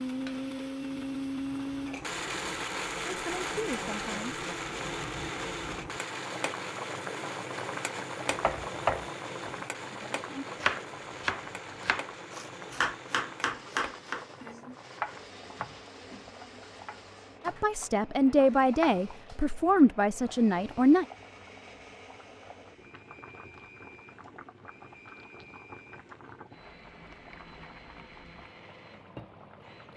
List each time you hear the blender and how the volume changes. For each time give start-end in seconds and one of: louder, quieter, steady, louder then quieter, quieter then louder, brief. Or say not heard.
0.0-29.9 quieter.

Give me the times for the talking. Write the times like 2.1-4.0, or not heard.
3.0-4.4, 17.4-21.1.